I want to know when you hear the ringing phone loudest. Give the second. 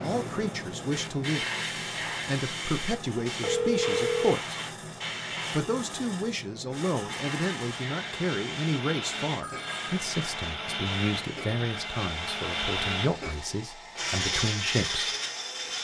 4 s.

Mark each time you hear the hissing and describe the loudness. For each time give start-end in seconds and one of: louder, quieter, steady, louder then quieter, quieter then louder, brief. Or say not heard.
0.0-15.7 quieter.